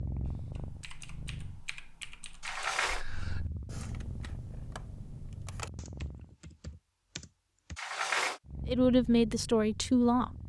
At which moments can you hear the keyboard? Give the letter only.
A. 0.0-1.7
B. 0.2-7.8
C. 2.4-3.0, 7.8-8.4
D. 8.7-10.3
B.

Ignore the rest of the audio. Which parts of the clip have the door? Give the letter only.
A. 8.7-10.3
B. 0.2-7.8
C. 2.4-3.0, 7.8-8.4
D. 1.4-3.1
C.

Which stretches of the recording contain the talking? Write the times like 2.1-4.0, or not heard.
8.7-10.3.